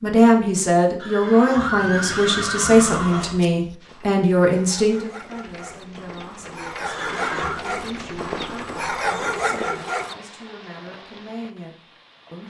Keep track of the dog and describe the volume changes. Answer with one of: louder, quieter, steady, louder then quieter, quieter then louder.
louder.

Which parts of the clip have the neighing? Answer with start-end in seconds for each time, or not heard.
0.9-3.4, 6.8-7.6.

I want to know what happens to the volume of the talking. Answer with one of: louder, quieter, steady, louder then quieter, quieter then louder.
quieter.